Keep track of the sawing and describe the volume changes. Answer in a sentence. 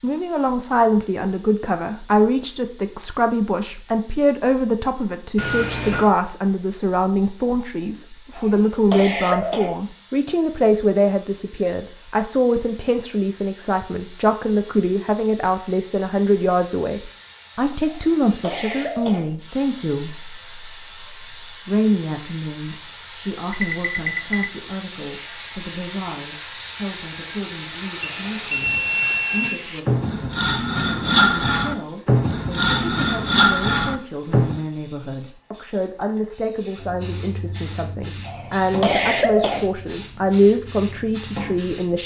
The volume of the sawing goes up.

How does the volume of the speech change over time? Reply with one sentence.
The loudness of the speech goes down, then up.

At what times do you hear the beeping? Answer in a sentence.
The beeping can be heard from 5.3 to 6.1 s, from 23.5 to 24.5 s and from 28.0 to 29.5 s.